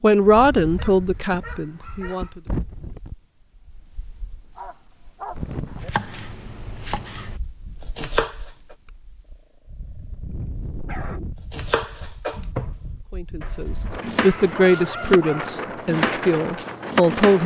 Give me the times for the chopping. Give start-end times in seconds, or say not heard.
5.7-8.8, 11.5-17.4.